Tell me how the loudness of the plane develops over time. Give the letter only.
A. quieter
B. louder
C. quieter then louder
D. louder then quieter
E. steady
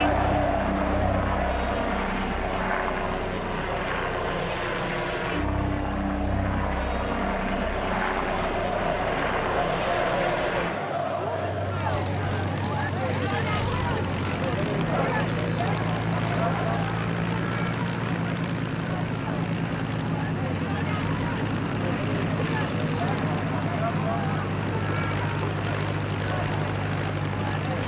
E.